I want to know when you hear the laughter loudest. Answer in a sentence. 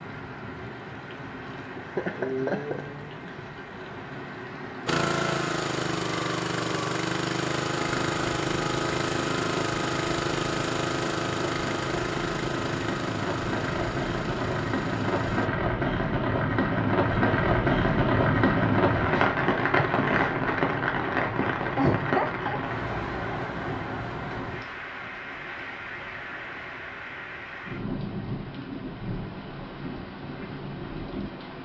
The loudest moment of the laughter is at 22 seconds.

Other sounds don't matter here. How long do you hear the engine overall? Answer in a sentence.
The engine can be heard for 11 seconds in total.